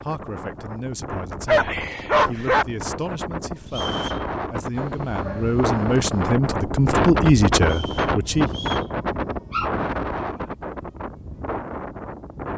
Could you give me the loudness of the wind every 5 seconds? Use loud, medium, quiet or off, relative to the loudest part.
medium, loud, medium.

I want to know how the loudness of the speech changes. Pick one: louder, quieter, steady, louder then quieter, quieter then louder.
louder.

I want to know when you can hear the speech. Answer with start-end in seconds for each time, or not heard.
0.0-8.6.